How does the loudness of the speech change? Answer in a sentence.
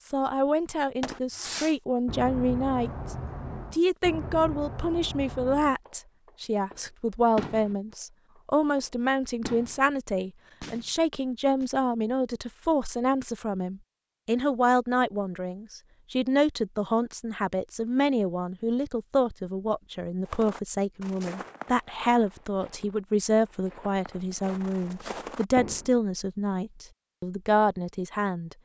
The loudness of the speech stays about the same.